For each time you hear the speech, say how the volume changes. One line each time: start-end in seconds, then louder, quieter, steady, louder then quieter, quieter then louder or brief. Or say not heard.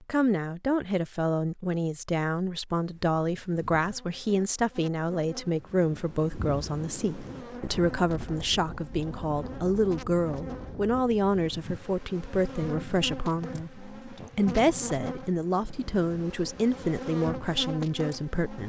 0.0-18.6 steady.